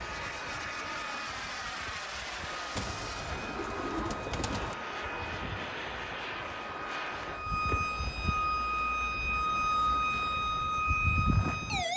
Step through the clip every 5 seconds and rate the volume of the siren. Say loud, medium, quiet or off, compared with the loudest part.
quiet, loud, loud.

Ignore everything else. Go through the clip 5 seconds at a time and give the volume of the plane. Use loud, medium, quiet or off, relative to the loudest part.
loud, loud, quiet.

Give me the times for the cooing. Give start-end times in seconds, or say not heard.
2.8-4.8.